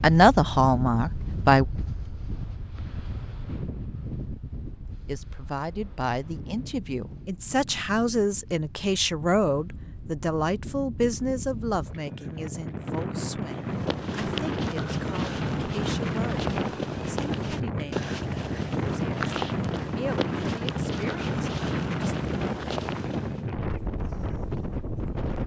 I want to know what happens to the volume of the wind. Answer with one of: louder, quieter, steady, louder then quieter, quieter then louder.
quieter then louder.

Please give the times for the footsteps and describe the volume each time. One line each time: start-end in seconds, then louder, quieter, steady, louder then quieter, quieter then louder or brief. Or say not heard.
13.5-23.5 steady.